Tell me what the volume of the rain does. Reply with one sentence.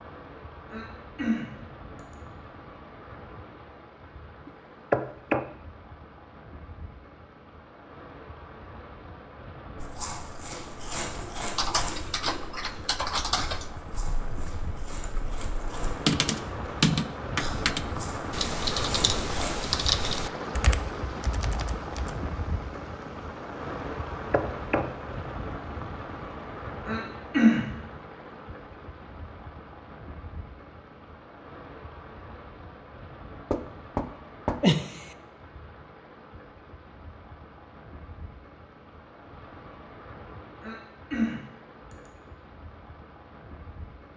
The volume of the rain goes up, then down.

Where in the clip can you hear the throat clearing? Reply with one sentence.
You can hear the throat clearing from 0.7 to 2.1 s, from 26.9 to 27.6 s and from 40.6 to 42.1 s.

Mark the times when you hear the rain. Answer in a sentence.
You can hear the rain from 0.0 to 44.1 s.